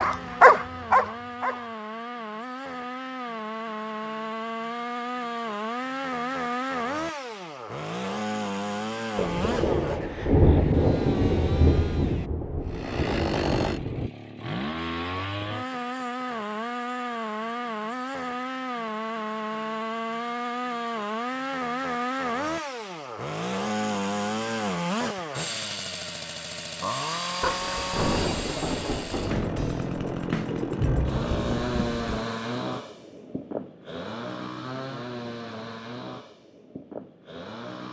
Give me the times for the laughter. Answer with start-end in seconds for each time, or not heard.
not heard.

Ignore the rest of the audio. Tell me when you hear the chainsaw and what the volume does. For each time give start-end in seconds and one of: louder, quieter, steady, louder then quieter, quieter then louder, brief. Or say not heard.
0.0-37.8 steady.